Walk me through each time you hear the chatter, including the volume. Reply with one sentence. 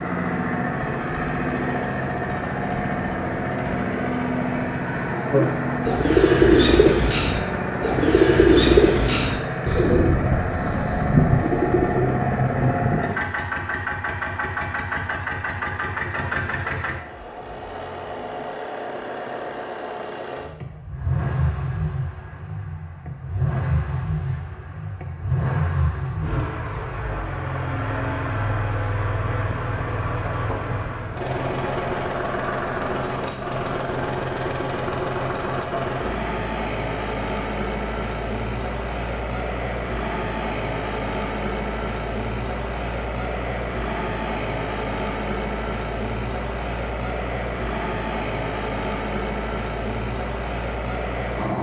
The chatter can't be heard in this clip.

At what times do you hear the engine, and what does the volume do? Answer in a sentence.
The engine can be heard from 0.0 to 51.5 s, at a steady volume.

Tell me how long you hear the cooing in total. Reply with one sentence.
You can hear the cooing for 7 seconds altogether.